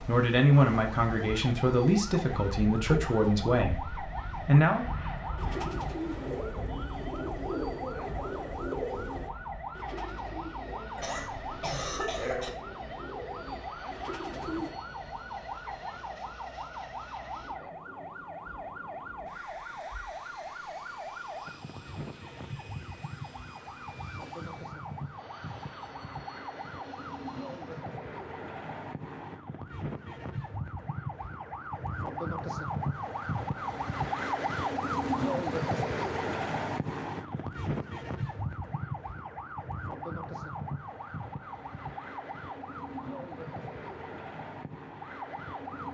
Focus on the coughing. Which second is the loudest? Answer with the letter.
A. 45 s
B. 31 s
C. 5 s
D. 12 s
D.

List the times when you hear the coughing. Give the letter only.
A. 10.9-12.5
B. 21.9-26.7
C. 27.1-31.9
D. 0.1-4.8
A.